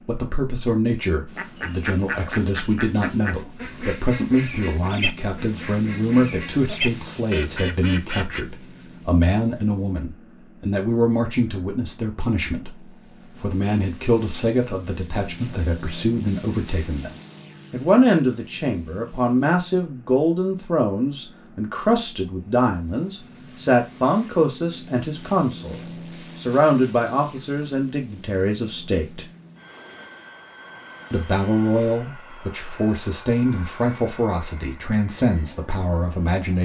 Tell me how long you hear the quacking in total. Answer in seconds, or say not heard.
7 s.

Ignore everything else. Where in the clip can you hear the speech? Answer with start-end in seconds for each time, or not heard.
0.1-29.2, 31.1-36.6.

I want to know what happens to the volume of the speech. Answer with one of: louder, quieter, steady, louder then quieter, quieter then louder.
steady.